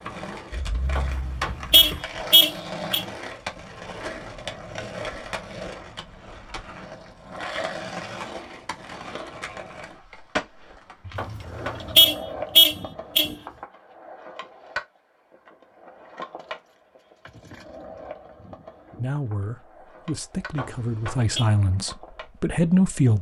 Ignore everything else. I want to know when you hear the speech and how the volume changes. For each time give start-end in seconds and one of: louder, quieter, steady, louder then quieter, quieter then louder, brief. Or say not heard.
18.9-23.1 louder.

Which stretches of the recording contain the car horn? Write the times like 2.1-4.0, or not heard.
0.9-3.0, 11.2-13.3, 20.6-21.4.